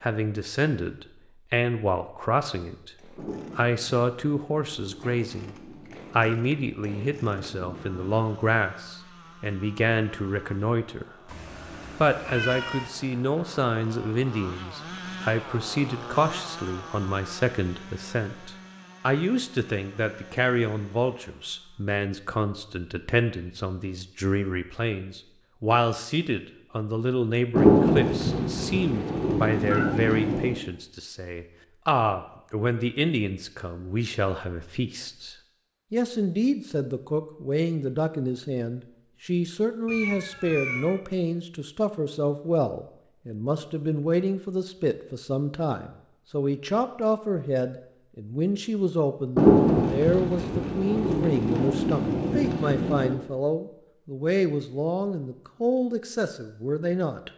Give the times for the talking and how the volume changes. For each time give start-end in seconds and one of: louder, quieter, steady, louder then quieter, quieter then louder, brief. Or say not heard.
0.0-11.1 steady
11.9-57.3 steady.